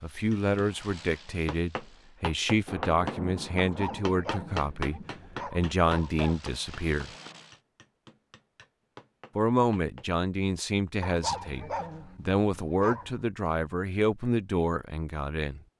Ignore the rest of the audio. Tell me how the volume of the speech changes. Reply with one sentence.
The volume of the speech stays about the same.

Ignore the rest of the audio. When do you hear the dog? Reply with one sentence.
The dog can be heard from 3.5 to 6.4 s and from 11.0 to 13.2 s.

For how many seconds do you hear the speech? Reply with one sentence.
The speech can be heard for 13 seconds in total.